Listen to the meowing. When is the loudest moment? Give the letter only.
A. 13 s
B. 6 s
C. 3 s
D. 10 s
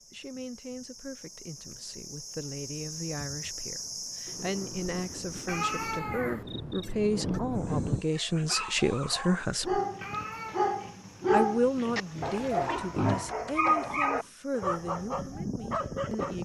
B.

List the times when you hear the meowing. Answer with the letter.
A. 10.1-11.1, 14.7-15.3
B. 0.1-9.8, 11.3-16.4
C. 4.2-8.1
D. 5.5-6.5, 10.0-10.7
D.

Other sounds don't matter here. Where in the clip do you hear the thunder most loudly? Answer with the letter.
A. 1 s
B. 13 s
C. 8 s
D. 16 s
C.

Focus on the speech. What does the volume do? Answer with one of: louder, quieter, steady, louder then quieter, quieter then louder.
louder then quieter.